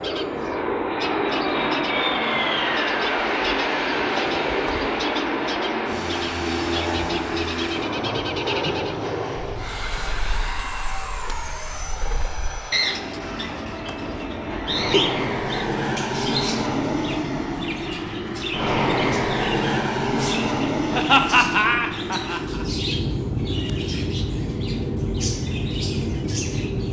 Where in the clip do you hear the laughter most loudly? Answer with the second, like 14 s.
21 s.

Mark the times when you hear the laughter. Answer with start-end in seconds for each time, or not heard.
4.2-4.8, 13.8-15.1, 20.9-22.6.